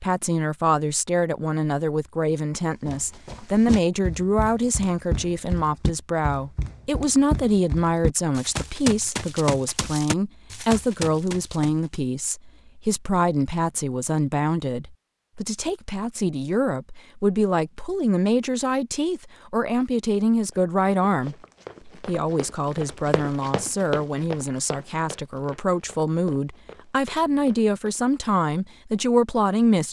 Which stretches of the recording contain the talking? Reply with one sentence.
The talking can be heard from 0.0 to 29.8 s.